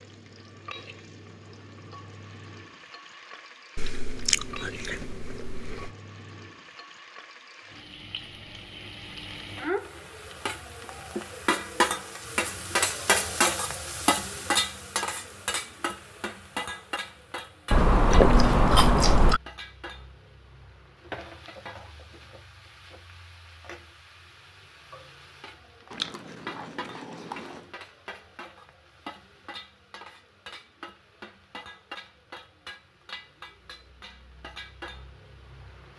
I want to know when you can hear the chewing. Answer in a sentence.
The chewing can be heard from 3.8 to 5.9 s, from 17.7 to 19.4 s and from 25.9 to 27.6 s.